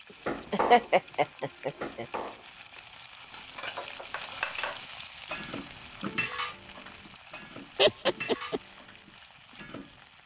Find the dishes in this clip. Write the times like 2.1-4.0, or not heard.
0.2-10.1.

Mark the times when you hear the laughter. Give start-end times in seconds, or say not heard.
0.5-2.0, 7.8-8.6.